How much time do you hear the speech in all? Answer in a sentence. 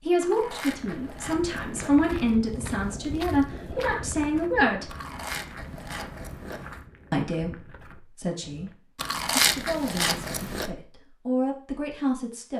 The speech can be heard for 10 seconds in total.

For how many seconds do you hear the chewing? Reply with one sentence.
You can hear the chewing for 6 seconds altogether.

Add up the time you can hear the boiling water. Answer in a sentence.
You can't hear the boiling water here.